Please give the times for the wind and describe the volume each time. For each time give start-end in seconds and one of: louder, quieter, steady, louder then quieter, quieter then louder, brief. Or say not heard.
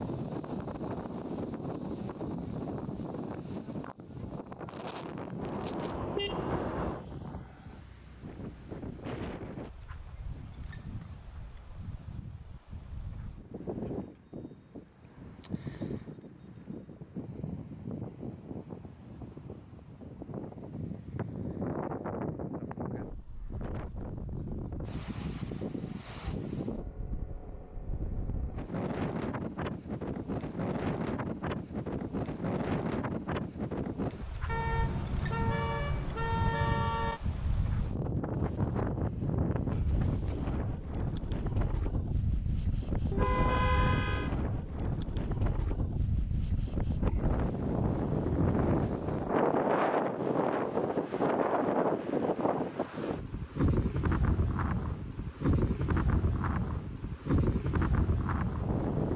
0.0-59.1 louder.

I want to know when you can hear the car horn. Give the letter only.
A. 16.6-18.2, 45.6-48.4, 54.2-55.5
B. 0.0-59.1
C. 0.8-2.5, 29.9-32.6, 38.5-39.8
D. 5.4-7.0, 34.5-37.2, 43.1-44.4
D.